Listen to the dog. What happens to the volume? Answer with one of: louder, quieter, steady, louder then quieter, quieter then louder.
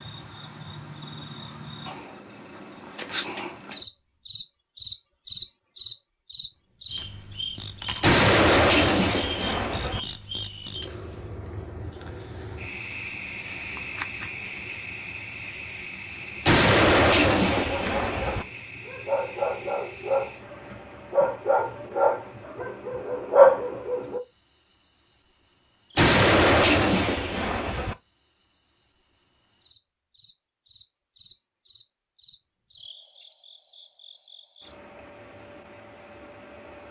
louder.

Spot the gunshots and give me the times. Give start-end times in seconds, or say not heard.
8.0-10.0, 16.4-18.4, 25.9-27.9.